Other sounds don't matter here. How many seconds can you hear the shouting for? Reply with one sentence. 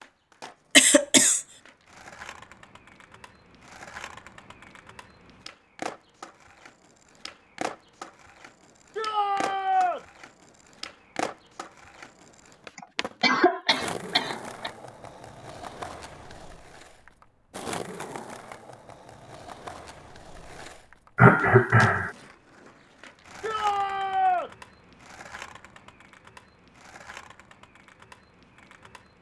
The shouting can be heard for 2 seconds in total.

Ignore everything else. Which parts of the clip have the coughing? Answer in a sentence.
The coughing can be heard from 0.8 to 1.4 s, from 12.8 to 14.7 s and from 21.1 to 22.1 s.